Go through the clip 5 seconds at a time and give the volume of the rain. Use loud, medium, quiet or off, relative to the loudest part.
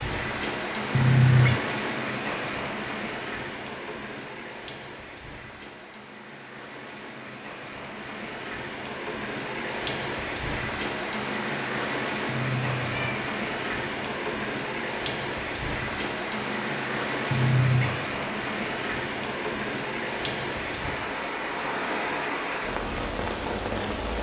loud, medium, loud, loud, loud.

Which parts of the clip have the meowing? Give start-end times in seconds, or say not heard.
0.9-1.6, 12.2-13.2, 17.3-18.1.